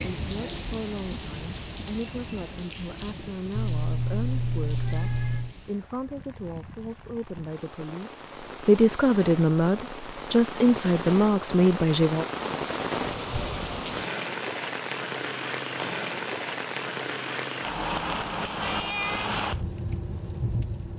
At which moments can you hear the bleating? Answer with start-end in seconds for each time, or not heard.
not heard.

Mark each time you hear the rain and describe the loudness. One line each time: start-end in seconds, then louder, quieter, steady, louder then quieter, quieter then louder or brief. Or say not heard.
0.0-20.9 quieter then louder.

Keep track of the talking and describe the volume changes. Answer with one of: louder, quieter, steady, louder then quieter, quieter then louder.
louder.